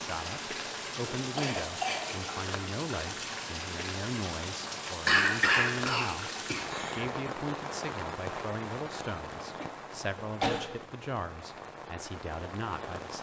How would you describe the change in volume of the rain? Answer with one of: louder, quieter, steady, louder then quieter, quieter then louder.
quieter.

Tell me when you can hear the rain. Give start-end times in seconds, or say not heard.
0.0-13.1.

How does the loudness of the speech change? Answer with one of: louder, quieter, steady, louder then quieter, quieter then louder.
steady.